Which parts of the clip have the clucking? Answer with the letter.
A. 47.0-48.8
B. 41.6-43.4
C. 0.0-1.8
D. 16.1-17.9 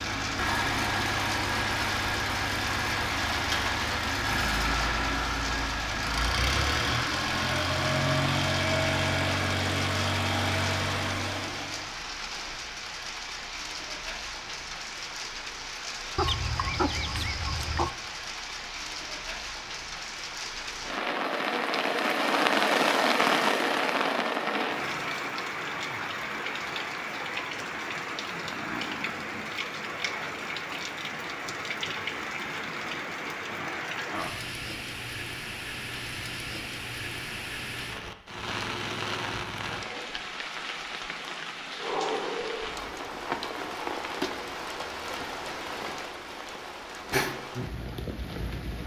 D.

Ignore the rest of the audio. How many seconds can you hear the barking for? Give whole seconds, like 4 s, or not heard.
not heard.